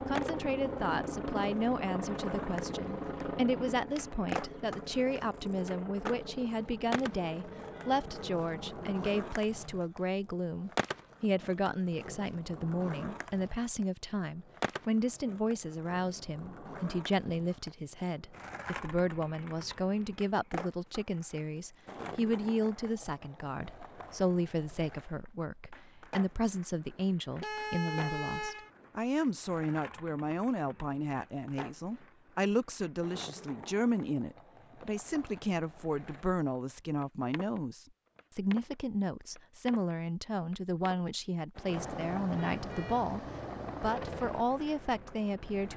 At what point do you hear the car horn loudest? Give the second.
28 s.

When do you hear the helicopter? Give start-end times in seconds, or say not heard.
0.0-9.1, 41.6-45.7.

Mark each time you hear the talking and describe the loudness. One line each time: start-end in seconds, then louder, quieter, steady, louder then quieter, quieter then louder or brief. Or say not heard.
0.1-45.7 steady.